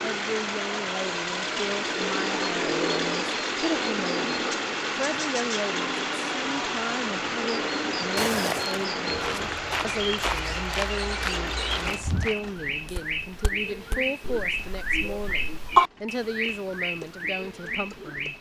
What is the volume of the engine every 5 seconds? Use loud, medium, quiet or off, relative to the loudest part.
loud, loud, medium, quiet.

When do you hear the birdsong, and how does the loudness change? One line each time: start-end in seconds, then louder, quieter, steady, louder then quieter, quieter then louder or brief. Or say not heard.
0.0-18.3 louder.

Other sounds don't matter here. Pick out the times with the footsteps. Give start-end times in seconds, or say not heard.
8.2-15.8.